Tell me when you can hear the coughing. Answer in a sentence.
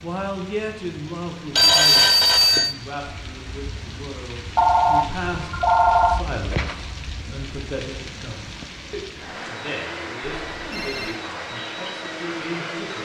The coughing can't be heard in this clip.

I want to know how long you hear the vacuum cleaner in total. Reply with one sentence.
You can hear the vacuum cleaner for 4 seconds altogether.